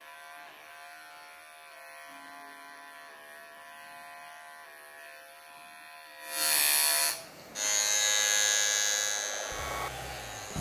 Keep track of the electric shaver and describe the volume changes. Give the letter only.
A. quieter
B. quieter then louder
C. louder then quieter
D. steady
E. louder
E.